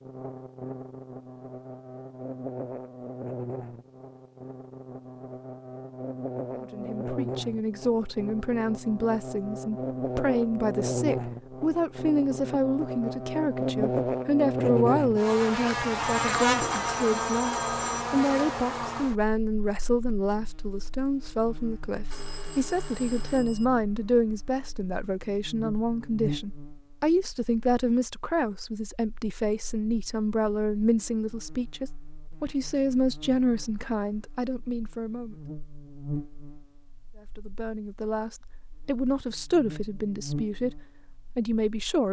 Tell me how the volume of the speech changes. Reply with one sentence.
The volume of the speech stays about the same.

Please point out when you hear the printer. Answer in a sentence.
You can't hear the printer here.